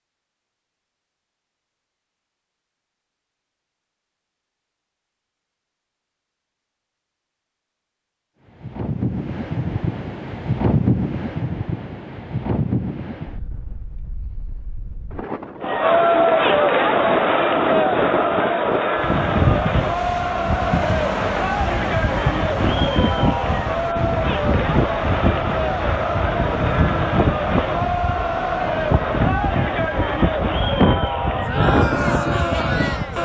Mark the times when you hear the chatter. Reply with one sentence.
You can hear the chatter from 15.6 to 33.1 s.